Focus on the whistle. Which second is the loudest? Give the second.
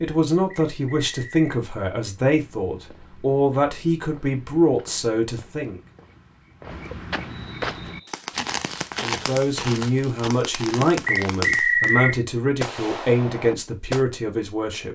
12 s.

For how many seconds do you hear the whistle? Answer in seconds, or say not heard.
3 s.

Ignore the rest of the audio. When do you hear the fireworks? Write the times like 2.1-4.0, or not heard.
7.8-14.1.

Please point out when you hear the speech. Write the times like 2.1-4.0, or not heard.
0.0-5.8, 9.0-14.8.